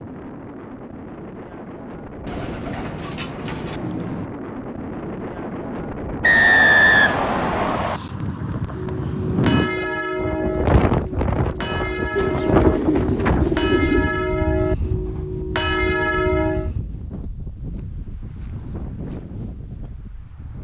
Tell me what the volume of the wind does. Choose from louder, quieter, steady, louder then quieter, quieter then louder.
louder then quieter.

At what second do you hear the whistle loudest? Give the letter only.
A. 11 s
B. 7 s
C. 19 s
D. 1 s
B.